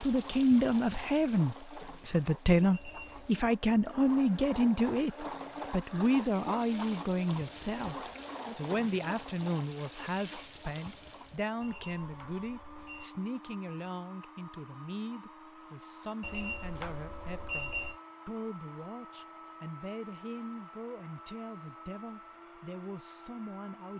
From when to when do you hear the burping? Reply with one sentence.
You can't hear the burping here.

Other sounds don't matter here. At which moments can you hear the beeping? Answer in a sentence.
You can hear the beeping from 2.7 to 3.4 s, from 11.6 to 13.1 s and from 16.2 to 17.9 s.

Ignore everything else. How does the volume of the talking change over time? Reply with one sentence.
The loudness of the talking goes down.